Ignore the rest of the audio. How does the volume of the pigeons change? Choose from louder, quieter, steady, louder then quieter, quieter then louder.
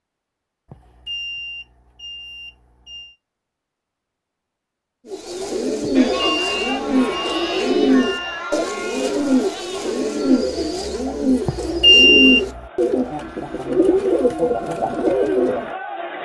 steady.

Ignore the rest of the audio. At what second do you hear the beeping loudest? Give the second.
12 s.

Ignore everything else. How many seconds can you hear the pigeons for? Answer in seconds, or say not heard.
11 s.